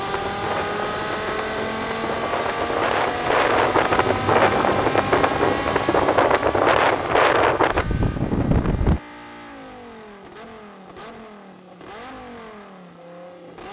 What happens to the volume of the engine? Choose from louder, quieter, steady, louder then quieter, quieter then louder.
quieter.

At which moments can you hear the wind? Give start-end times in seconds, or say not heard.
0.0-9.0.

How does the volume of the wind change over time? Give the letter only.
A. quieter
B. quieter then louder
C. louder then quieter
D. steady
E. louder
E.